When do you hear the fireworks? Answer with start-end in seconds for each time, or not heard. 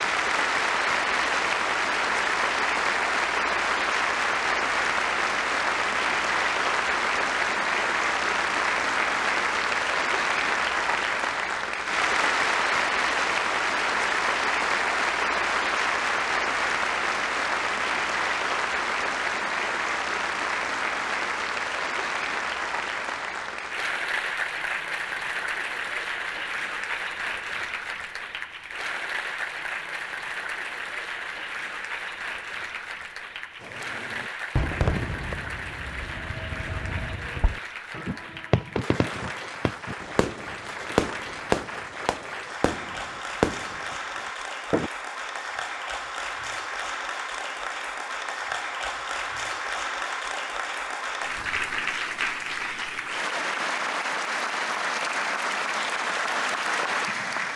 33.6-44.9.